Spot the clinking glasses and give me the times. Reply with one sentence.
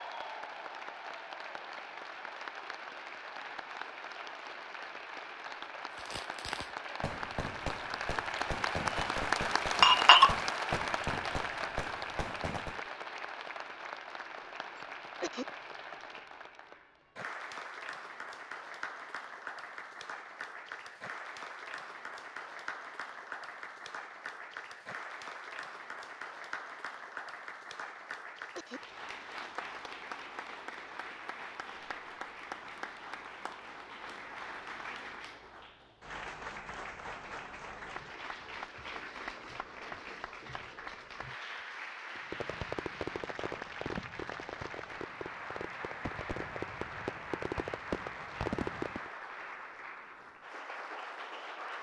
You can hear the clinking glasses from 9.8 to 10.8 s.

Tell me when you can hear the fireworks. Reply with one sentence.
The fireworks can be heard from 5.9 to 12.9 s and from 42.1 to 49.1 s.